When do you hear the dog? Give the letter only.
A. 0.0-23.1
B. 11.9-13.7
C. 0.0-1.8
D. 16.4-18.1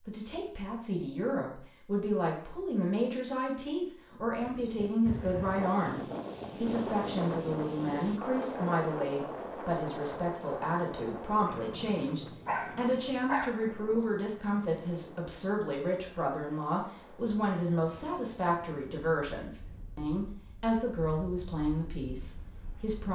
B.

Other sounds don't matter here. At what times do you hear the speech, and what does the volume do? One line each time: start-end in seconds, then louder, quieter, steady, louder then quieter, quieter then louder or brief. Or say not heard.
0.0-23.1 steady.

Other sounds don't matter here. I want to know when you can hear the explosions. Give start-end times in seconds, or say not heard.
not heard.